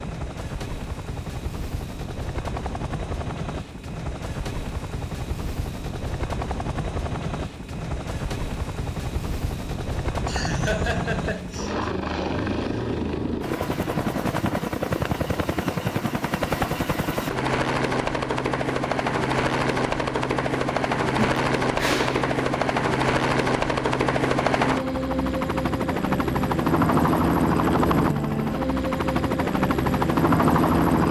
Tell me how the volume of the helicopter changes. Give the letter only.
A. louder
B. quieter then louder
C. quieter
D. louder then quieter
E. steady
A.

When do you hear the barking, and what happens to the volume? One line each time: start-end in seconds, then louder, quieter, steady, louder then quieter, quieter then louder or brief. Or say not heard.
not heard.